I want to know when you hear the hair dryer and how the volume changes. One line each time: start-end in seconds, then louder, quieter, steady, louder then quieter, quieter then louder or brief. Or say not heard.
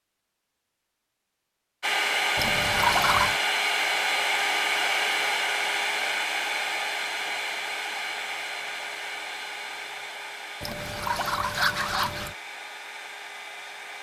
1.8-13.9 quieter.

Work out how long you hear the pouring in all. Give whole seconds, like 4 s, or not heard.
3 s.